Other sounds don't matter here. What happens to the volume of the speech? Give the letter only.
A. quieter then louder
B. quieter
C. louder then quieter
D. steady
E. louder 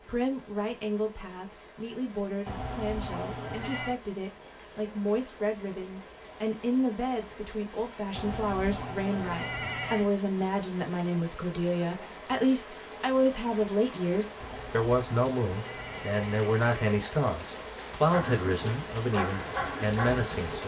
E.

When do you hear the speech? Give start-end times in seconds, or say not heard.
0.0-20.6.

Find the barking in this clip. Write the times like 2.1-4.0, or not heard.
18.1-20.6.